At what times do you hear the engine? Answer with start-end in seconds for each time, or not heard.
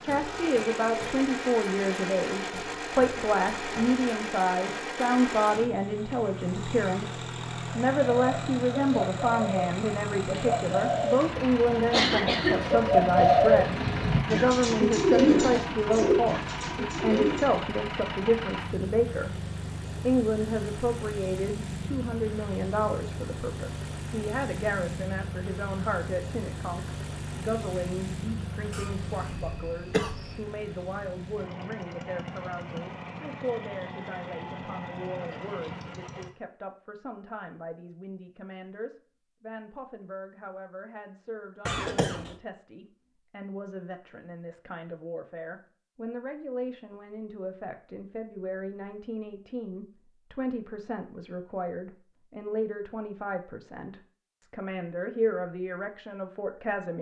0.0-36.3.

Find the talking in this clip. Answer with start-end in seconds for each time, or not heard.
0.0-56.9.